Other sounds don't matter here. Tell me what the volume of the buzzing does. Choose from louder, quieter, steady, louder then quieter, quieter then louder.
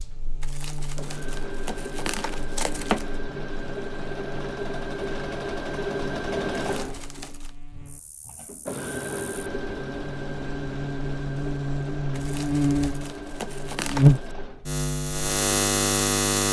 quieter then louder.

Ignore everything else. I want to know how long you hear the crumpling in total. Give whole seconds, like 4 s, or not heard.
6 s.